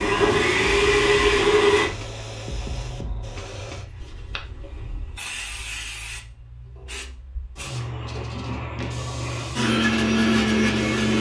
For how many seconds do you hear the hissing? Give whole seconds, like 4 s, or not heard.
11 s.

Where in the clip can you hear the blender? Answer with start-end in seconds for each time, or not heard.
0.0-1.9, 9.6-11.1.